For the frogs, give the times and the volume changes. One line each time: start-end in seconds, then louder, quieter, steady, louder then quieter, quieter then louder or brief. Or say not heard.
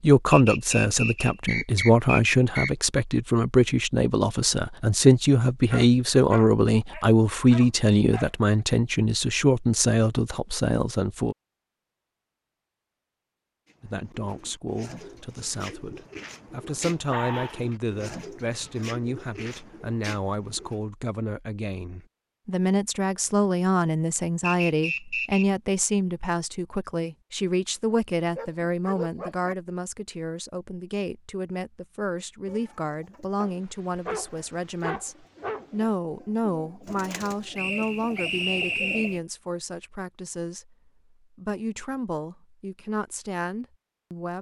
not heard.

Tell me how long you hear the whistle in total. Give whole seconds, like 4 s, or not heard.
5 s.